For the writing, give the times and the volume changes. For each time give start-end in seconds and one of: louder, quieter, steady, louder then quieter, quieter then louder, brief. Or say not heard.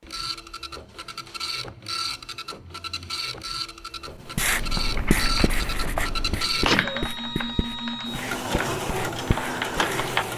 4.2-10.3 quieter.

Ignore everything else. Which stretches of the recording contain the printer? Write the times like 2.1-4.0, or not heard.
0.0-10.3.